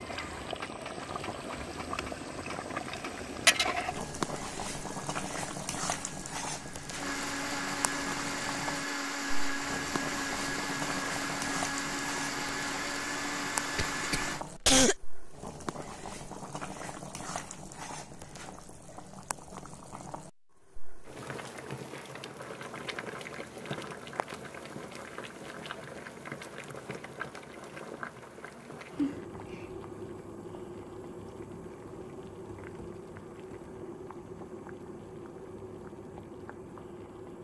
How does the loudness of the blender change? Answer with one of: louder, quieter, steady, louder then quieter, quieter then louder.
louder.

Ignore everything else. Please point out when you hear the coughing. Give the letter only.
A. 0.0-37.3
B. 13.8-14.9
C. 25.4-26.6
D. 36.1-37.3
B.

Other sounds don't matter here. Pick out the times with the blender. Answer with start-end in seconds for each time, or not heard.
0.0-14.4.